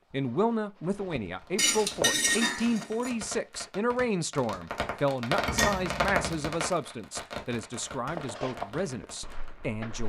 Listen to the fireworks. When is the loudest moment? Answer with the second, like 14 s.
6 s.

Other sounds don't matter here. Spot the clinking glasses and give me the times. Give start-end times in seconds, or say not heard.
1.6-3.1, 5.5-6.5.